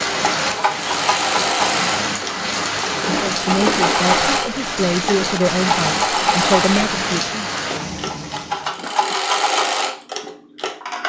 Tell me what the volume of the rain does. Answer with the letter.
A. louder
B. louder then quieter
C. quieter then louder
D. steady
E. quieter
D.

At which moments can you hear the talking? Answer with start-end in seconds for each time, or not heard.
3.2-7.5.